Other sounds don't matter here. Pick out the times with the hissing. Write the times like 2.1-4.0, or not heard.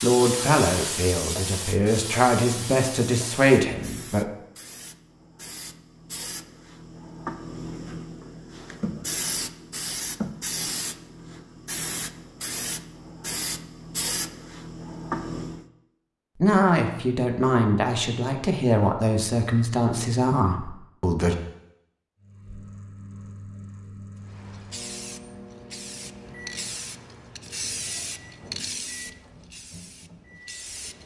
0.0-15.7, 24.2-31.0.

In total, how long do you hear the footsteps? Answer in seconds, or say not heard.
not heard.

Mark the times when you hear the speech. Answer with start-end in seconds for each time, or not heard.
0.0-4.2, 16.4-21.4.